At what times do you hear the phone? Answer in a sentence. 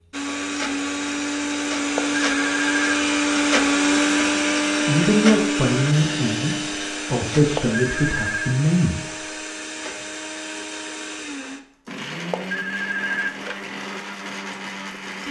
You can hear the phone from 1.9 to 2.9 s, from 7.5 to 8.6 s and from 12.3 to 13.7 s.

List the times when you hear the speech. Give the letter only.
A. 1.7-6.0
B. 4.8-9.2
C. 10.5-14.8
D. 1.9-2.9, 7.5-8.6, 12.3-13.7
B.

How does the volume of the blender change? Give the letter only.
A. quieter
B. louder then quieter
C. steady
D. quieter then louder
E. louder
A.